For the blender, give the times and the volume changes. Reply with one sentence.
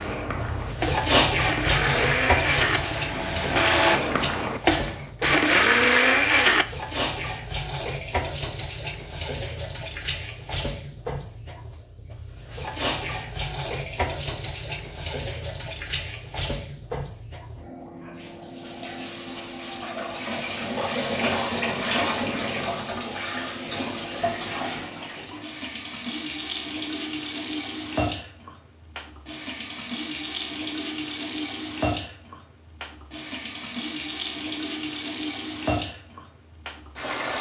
You can hear the blender from 0.0 to 6.7 s, getting louder.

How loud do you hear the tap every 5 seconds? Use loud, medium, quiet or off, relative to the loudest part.
loud, medium, medium, medium, loud, medium, medium, medium.